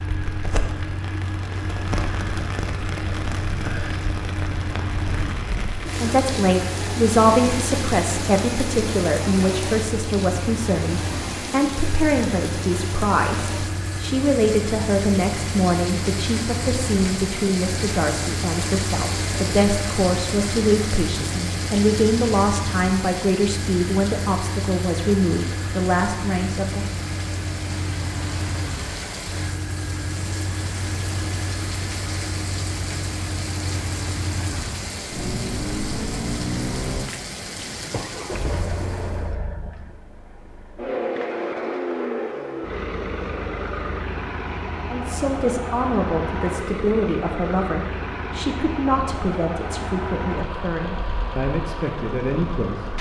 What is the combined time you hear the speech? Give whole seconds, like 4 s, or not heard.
29 s.